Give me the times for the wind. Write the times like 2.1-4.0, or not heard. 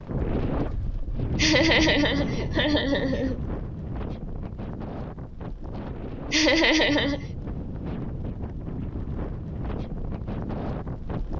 0.0-11.3.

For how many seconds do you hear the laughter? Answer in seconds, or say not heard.
3 s.